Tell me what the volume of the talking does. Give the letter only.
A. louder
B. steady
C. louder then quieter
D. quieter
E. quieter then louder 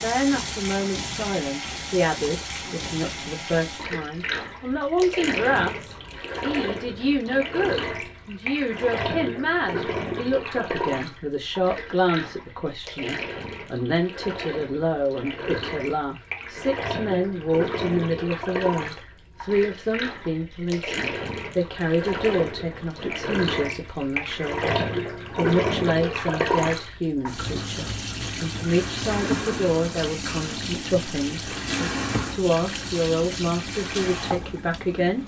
B.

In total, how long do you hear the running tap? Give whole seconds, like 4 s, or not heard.
35 s.